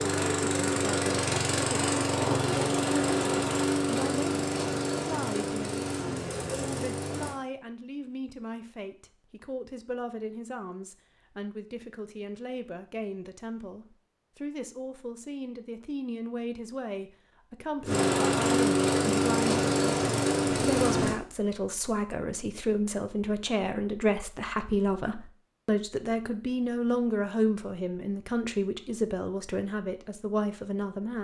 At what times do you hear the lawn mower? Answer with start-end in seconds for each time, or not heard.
0.0-7.3, 17.8-21.1.